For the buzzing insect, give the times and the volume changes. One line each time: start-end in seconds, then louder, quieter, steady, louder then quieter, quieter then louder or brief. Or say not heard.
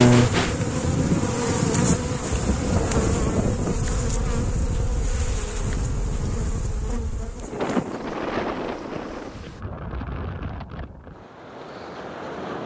0.0-9.7 quieter.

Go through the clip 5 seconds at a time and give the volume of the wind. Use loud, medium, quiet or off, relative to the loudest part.
loud, medium, medium.